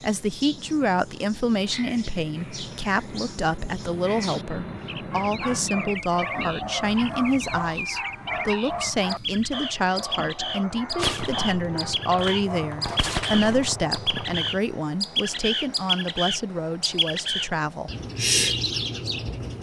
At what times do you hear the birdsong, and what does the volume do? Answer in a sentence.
You can hear the birdsong from 0.0 to 19.5 s, getting louder.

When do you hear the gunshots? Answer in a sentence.
You can hear the gunshots from 10.9 to 14.6 s.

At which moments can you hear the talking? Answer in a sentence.
The talking can be heard from 0.0 to 17.9 s.